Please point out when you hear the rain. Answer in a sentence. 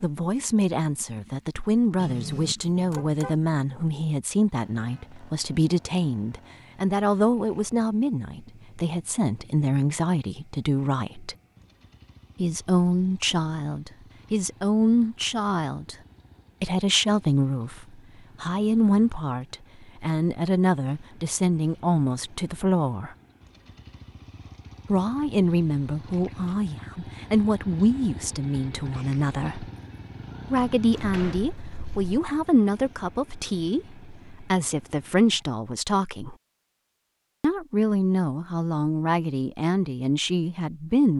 The rain can't be heard in this clip.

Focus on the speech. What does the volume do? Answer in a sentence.
The volume of the speech stays about the same.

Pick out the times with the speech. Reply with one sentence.
The speech can be heard from 0.0 to 11.3 s, from 12.3 to 15.9 s, from 16.6 to 23.1 s, from 24.9 to 29.7 s, from 30.5 to 36.4 s and from 37.4 to 41.1 s.